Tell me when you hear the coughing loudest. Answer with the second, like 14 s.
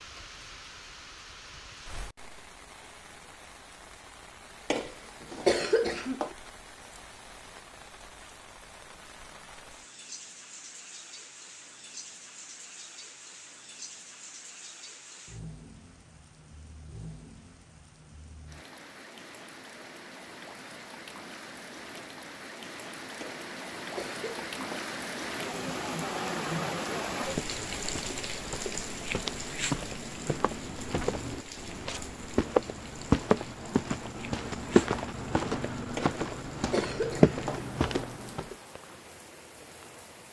6 s.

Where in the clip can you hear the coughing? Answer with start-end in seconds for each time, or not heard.
4.7-6.3, 23.2-24.9, 36.0-37.7.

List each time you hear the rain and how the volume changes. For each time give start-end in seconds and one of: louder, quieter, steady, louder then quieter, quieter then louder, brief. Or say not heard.
0.0-40.2 louder then quieter.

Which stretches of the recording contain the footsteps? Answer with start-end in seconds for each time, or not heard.
27.1-38.5.